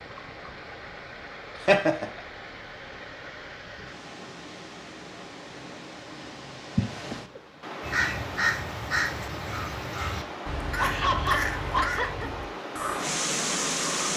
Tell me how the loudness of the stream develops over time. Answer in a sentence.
The volume of the stream goes up.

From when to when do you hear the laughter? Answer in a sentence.
You can hear the laughter from 1.6 to 2.0 s, from 6.8 to 7.2 s and from 10.8 to 12.3 s.